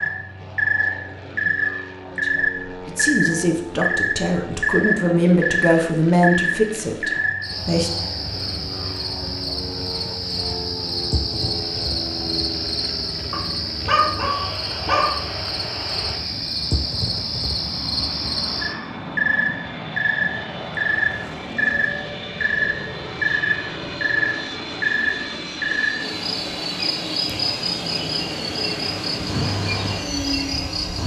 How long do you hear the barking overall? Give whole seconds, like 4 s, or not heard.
2 s.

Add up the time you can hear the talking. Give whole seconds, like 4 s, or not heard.
6 s.